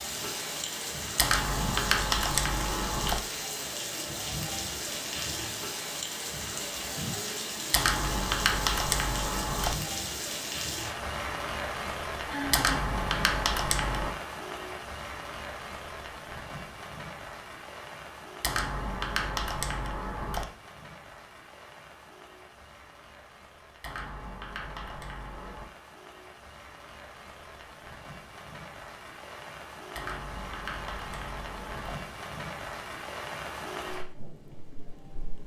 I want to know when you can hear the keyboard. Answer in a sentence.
The keyboard can be heard from 1.1 to 3.2 s, from 7.7 to 9.8 s, from 12.5 to 14.2 s, from 18.4 to 20.4 s, from 23.8 to 25.7 s and from 29.9 to 31.9 s.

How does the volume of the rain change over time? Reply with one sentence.
The volume of the rain goes down, then up.